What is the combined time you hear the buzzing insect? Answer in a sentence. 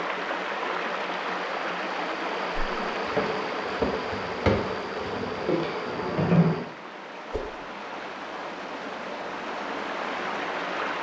The buzzing insect can be heard for 4 seconds in total.